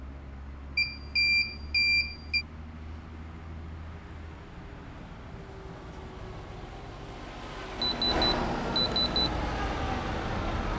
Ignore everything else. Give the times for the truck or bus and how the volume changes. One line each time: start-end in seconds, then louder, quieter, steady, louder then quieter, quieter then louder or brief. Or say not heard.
0.0-10.7 louder.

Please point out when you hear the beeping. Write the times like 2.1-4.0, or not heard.
0.8-2.5, 7.8-9.3.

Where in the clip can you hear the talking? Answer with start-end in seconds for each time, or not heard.
not heard.